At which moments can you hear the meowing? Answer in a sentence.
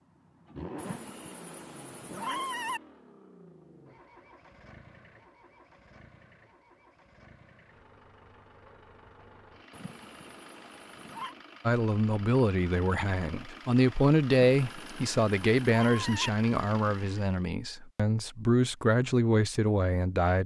The meowing can be heard from 0.8 to 2.8 s, from 9.7 to 11.3 s and from 14.5 to 16.3 s.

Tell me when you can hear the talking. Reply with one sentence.
You can hear the talking from 11.7 to 20.4 s.